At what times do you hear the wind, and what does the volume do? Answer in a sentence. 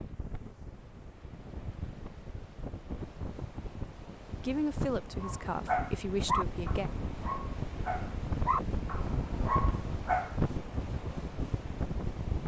You can hear the wind from 0.0 to 12.4 s, getting louder.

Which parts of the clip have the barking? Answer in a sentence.
You can hear the barking from 5.2 to 10.4 s.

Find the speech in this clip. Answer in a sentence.
You can hear the speech from 4.3 to 6.9 s.